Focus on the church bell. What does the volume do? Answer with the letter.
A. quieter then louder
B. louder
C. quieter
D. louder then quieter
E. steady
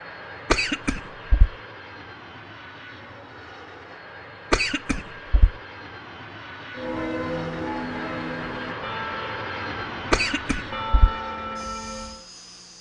A.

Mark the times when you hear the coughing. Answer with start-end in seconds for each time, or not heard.
0.5-1.5, 4.5-5.5, 10.1-11.1.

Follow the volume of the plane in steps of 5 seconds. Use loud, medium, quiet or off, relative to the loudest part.
medium, loud, loud.